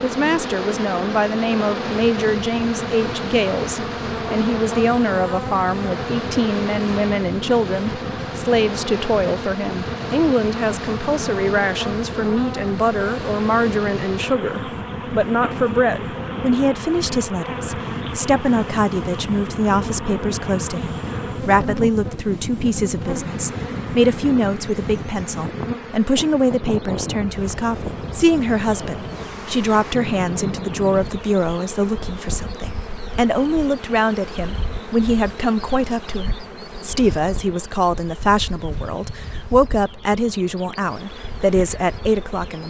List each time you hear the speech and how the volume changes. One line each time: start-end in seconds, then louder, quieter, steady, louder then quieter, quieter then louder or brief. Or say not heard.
0.0-42.6 steady.